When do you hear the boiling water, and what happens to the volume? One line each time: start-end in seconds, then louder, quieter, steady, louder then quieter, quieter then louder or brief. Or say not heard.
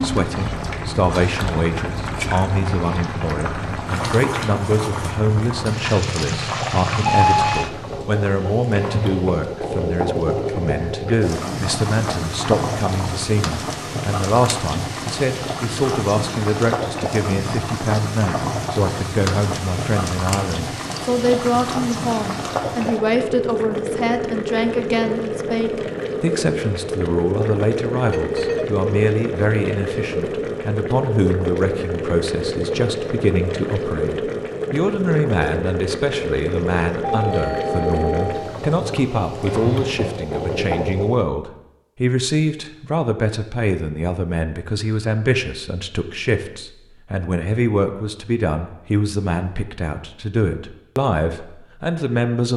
0.0-41.3 steady.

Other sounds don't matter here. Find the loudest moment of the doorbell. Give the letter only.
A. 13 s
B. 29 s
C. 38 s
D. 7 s
D.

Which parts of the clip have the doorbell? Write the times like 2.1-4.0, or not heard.
6.4-7.7, 28.0-28.7, 37.0-38.6.